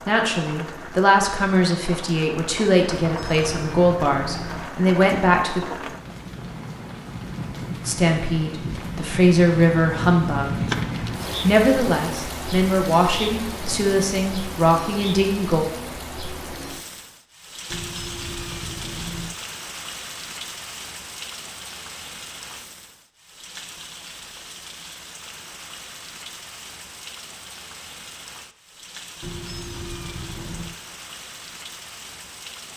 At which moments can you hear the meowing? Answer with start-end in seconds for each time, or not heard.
3.0-4.7, 17.7-19.4, 29.2-30.8.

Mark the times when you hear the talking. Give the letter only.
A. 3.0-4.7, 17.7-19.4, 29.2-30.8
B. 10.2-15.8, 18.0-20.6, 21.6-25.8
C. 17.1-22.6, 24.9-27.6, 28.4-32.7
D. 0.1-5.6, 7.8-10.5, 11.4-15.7
D.